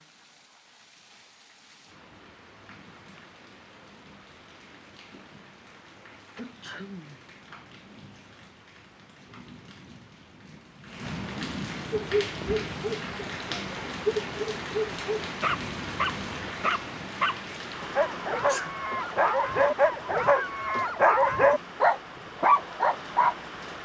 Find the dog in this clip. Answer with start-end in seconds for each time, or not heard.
11.9-23.4.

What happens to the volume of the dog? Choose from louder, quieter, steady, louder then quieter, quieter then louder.
louder.